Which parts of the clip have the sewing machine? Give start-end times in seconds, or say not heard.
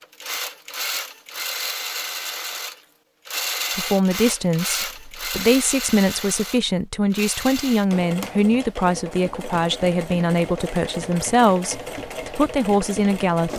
0.0-13.5.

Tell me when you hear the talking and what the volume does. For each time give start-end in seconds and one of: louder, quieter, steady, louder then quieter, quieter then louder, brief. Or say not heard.
3.8-13.5 steady.